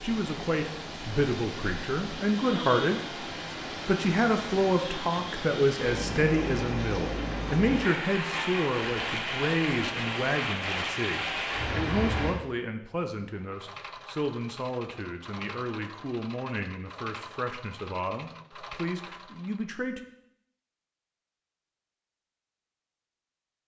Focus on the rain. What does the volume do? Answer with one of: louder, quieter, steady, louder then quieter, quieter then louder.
louder.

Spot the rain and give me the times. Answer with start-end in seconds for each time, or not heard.
0.0-12.3.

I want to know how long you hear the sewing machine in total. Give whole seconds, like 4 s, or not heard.
6 s.